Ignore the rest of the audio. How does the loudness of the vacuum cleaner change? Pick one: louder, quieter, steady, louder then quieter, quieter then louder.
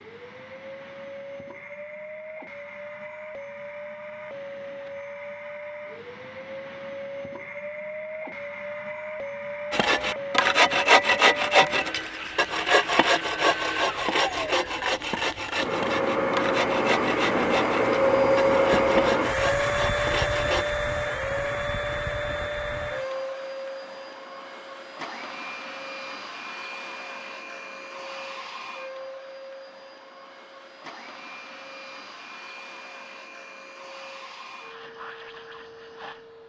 louder then quieter.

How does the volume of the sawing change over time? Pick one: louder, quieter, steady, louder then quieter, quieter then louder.
quieter.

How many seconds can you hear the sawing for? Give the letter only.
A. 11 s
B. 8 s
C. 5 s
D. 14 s
A.